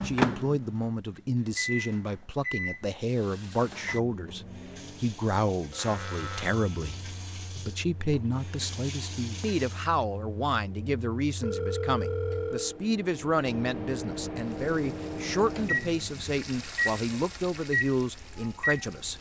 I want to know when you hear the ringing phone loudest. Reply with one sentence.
The volume of the ringing phone peaks at 12 seconds.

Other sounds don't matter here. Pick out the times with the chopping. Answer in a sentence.
You can't hear the chopping here.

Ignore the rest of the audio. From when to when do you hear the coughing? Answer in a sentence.
You can't hear the coughing here.